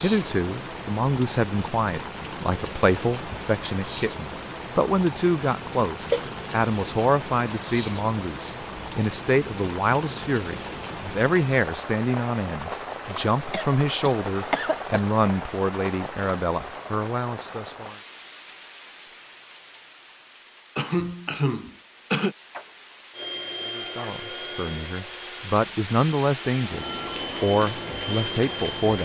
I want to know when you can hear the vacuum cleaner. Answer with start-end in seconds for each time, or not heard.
23.1-28.9.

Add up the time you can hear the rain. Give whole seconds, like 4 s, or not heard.
29 s.